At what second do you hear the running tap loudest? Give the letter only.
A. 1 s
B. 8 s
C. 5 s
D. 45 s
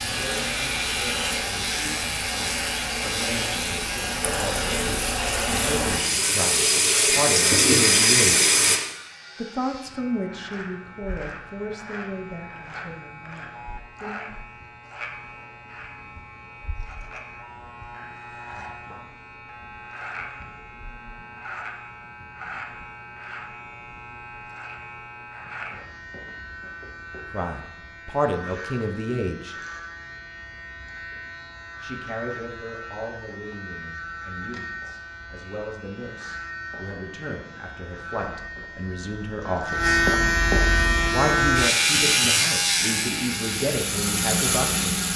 B.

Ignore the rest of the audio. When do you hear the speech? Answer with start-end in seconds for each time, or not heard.
0.1-8.6, 9.3-14.2, 27.3-29.6, 31.8-40.0, 41.1-45.1.